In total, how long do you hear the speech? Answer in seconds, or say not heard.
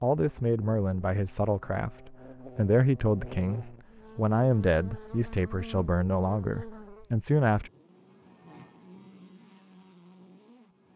8 s.